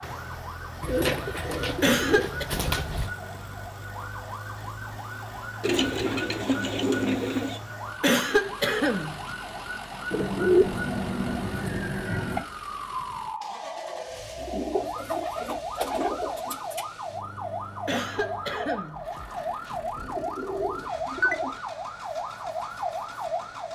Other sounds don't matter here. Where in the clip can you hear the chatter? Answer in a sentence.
The chatter can't be heard in this clip.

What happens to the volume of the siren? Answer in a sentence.
The loudness of the siren goes up.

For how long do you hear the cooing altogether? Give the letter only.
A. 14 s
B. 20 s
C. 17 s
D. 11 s
D.